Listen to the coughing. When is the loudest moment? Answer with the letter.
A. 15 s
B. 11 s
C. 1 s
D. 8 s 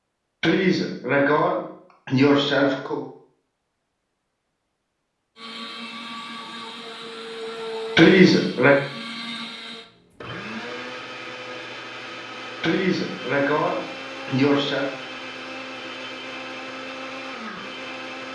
D.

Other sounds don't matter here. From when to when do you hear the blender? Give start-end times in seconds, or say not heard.
5.3-18.2.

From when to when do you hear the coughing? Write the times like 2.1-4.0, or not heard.
0.4-3.0, 8.0-8.8, 12.6-14.9.